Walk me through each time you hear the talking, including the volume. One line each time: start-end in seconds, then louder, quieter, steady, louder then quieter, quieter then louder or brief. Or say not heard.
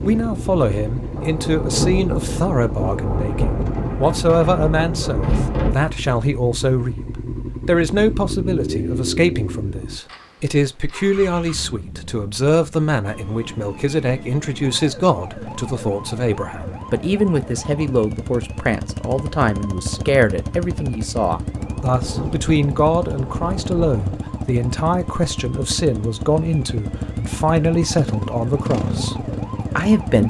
0.0-30.2 steady.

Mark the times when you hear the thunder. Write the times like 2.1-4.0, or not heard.
1.1-5.8, 21.5-24.2.